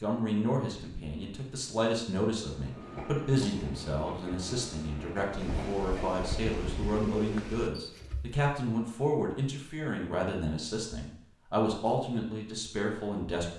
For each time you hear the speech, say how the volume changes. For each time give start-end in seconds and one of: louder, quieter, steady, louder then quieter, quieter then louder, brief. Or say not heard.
0.0-13.5 steady.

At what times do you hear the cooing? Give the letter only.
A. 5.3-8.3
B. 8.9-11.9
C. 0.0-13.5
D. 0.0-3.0
A.